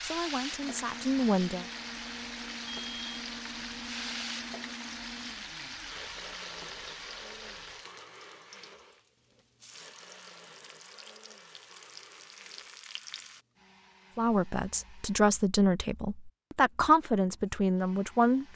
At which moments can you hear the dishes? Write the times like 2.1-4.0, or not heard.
not heard.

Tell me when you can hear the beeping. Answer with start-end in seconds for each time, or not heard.
2.6-3.2.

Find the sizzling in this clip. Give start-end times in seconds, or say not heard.
0.0-13.4.